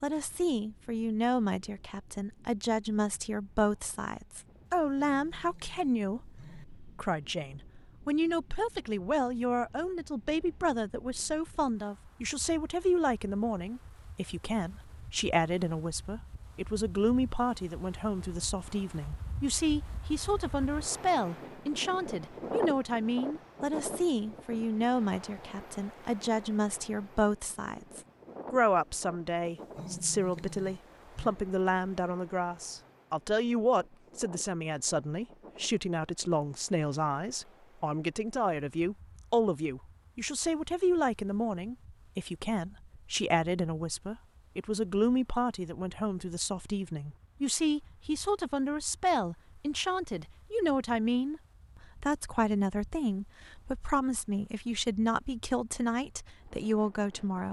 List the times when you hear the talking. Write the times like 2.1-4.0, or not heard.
0.0-57.4.